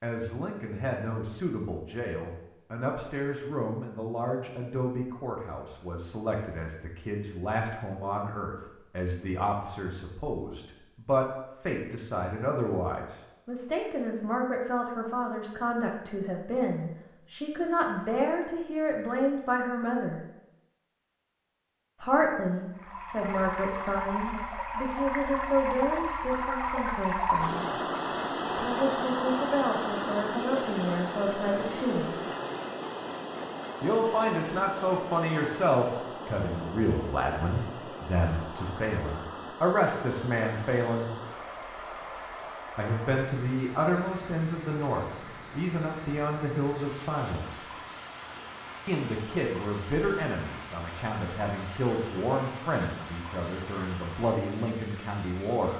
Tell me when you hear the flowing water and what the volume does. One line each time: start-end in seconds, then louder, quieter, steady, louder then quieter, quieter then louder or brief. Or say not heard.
22.7-55.7 quieter.